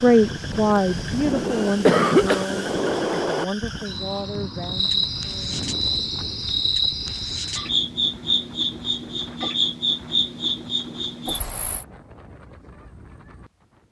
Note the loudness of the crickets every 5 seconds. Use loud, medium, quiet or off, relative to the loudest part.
medium, loud, loud.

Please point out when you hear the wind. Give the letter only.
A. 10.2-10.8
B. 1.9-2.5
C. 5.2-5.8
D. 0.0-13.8
D.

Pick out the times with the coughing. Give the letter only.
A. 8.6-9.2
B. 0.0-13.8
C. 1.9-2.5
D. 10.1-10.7
C.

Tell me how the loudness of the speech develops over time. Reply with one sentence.
The loudness of the speech goes down.